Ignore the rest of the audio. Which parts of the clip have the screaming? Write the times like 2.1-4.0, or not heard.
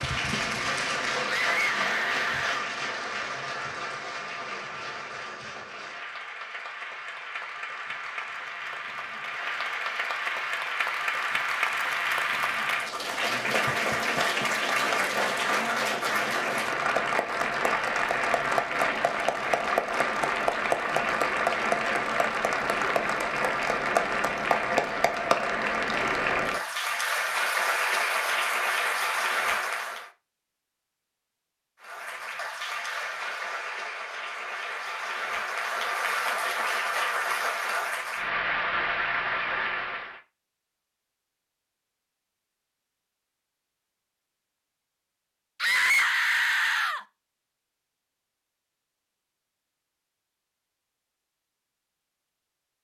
1.2-2.6, 45.6-47.0.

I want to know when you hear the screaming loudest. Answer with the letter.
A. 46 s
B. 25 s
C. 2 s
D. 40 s
A.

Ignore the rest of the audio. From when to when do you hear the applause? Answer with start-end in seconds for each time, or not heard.
0.0-30.1, 31.8-40.2.